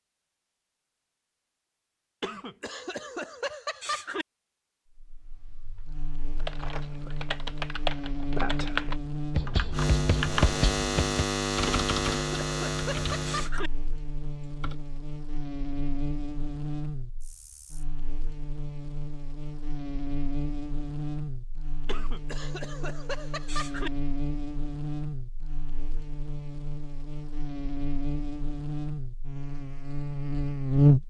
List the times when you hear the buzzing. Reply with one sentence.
You can hear the buzzing from 5.0 to 31.0 s.